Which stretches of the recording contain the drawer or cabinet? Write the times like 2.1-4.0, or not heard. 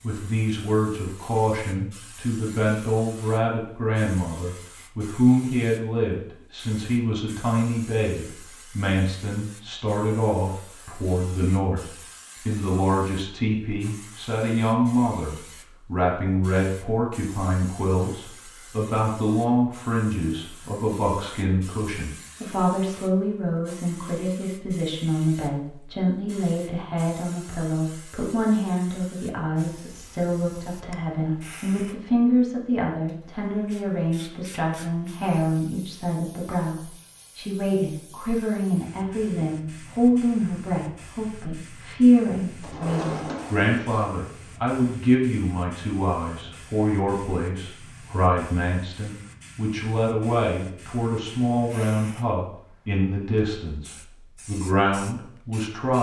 42.6-44.0.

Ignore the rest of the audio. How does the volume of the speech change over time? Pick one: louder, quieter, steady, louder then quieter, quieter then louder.
steady.